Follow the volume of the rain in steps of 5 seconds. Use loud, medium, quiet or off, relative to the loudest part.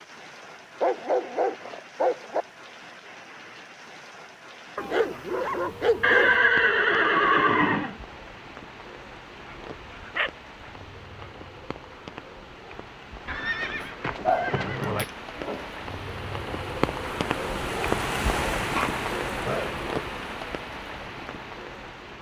quiet, quiet, quiet, loud, medium.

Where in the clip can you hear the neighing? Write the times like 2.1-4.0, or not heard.
6.0-8.0, 13.2-15.1.